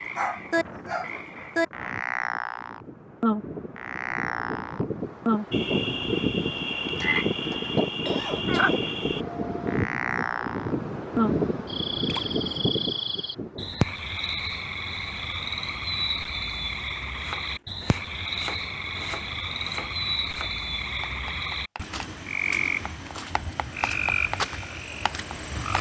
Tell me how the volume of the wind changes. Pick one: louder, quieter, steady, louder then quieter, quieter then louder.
louder.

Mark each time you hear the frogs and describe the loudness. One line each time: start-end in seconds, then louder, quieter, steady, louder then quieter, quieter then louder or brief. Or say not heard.
0.0-25.7 steady.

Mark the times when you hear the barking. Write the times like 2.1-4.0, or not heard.
0.1-1.3.